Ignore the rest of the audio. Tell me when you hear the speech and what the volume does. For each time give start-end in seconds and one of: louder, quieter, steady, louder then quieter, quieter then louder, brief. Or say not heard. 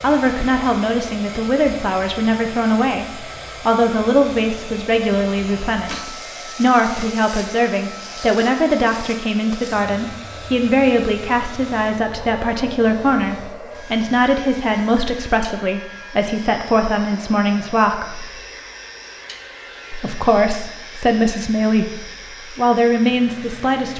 0.0-18.3 steady
19.9-23.9 steady.